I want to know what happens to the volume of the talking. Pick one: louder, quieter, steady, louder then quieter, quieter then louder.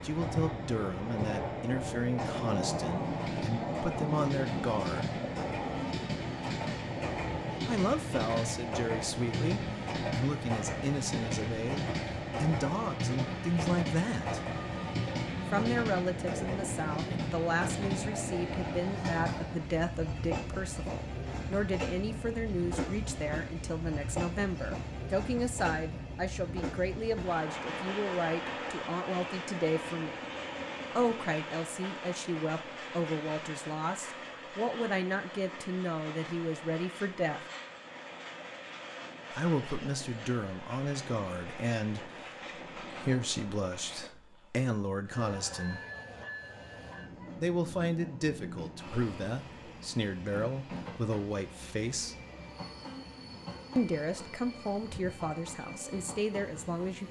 steady.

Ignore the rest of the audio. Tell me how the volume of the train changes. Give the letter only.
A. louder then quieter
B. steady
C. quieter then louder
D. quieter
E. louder
D.